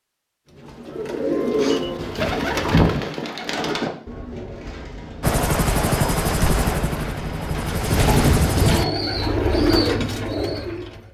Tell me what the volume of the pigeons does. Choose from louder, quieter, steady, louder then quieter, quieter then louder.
quieter then louder.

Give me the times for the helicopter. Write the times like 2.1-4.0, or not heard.
5.2-8.8.